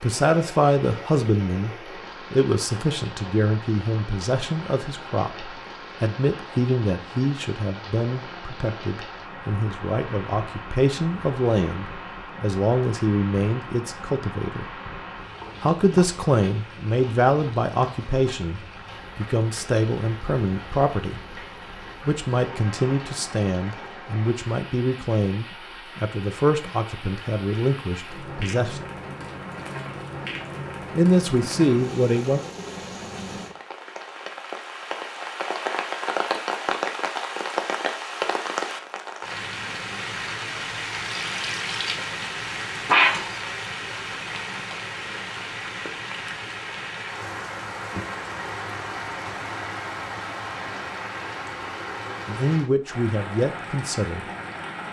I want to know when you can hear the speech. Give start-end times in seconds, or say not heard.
0.0-14.7, 15.6-21.4, 22.1-28.9, 30.9-32.4, 52.2-54.2.